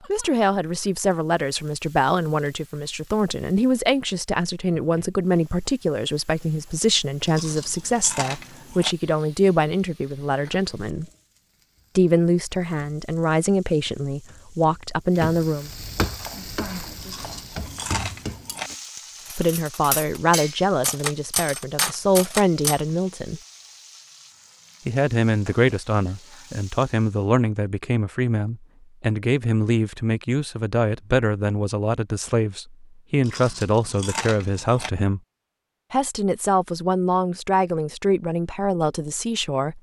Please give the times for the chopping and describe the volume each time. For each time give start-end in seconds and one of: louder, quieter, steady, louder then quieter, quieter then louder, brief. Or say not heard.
not heard.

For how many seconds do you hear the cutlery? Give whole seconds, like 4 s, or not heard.
6 s.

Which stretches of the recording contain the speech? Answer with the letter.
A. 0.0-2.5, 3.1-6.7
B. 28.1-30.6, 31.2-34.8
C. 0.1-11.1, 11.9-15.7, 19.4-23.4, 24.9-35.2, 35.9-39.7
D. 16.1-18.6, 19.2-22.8
C.